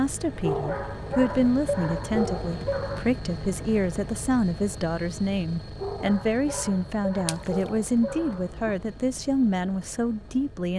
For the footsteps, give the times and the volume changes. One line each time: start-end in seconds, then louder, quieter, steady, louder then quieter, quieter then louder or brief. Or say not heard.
not heard.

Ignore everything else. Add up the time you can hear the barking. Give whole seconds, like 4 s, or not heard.
6 s.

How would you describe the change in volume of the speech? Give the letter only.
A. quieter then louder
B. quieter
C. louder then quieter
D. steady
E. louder
D.